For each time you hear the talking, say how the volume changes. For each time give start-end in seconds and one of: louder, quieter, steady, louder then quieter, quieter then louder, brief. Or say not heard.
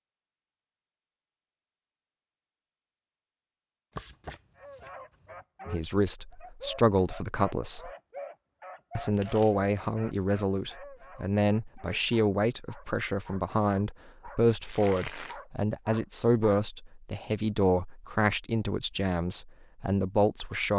5.7-7.9 brief
8.9-20.7 steady.